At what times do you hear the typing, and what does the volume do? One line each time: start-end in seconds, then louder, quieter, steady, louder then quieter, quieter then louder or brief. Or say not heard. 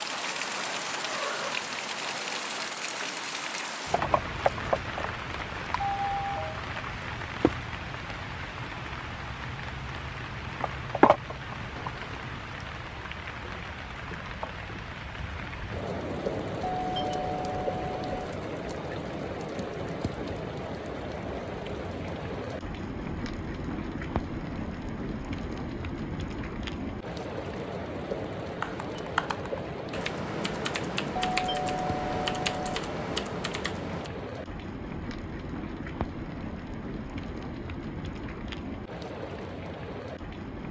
28.6-34.1 steady.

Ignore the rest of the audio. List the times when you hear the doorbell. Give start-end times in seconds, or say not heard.
5.8-6.6, 16.8-18.1, 31.2-32.7.